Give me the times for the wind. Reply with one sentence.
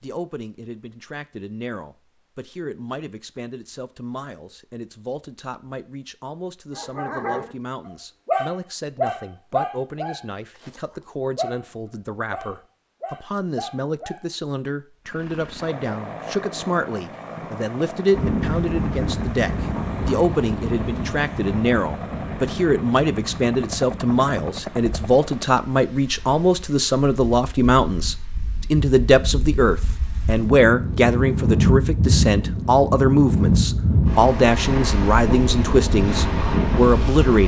The wind can be heard from 18.1 to 37.4 s.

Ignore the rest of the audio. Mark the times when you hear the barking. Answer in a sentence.
You can hear the barking from 6.8 to 7.5 s, from 8.2 to 11.7 s and from 12.3 to 14.2 s.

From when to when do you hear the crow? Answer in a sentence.
You can't hear the crow here.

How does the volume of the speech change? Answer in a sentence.
The loudness of the speech goes up.